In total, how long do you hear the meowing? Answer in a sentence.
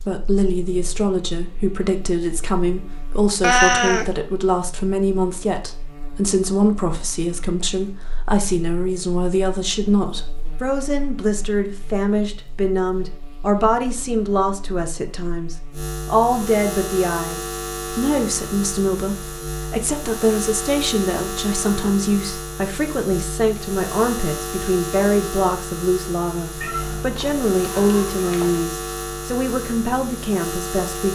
You can hear the meowing for 3 seconds altogether.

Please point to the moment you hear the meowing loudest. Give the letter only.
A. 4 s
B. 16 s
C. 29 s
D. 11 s
A.